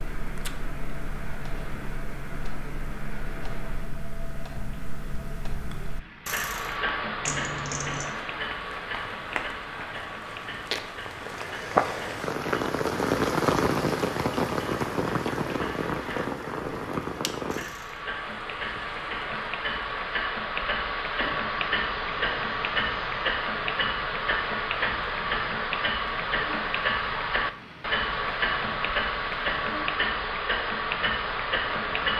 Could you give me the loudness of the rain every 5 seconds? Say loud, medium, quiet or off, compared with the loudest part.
quiet, quiet, loud, medium, quiet, quiet, quiet.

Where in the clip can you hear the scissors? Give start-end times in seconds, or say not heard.
7.2-8.1.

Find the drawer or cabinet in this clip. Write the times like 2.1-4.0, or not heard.
not heard.